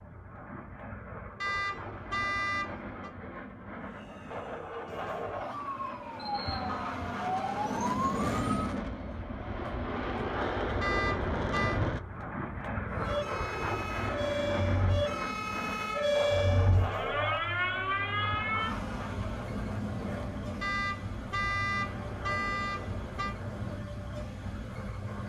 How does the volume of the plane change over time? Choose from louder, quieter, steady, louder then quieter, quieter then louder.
louder then quieter.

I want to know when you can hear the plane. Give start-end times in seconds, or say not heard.
0.0-25.2.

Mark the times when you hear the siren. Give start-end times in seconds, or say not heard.
3.8-8.8, 12.9-25.2.